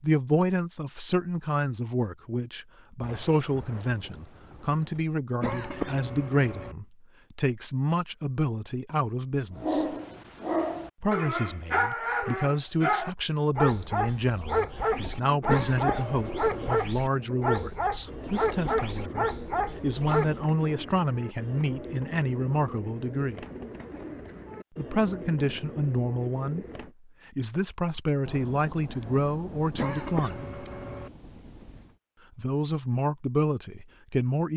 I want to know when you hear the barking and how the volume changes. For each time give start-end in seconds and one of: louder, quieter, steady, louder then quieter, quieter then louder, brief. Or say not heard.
9.6-20.4 steady.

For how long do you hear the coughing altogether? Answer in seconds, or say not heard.
4 s.